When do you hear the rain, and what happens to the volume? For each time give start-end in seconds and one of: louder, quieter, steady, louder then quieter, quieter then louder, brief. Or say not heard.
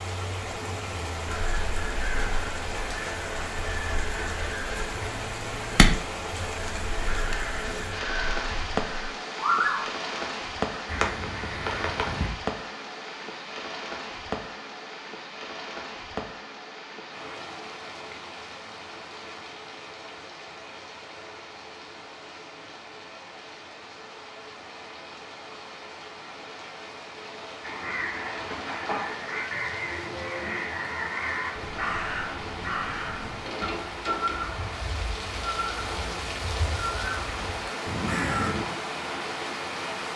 0.0-40.1 quieter then louder.